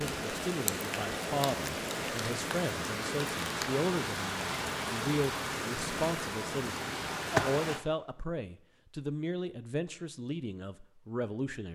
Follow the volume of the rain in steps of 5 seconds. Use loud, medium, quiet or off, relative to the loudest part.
loud, loud, off.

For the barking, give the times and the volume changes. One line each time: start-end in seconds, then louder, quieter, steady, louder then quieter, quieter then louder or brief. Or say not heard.
not heard.